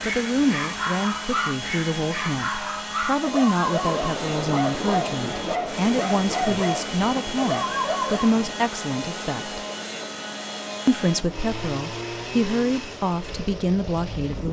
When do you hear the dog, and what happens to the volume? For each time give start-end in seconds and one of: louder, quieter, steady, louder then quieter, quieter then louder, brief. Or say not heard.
0.0-8.4 steady.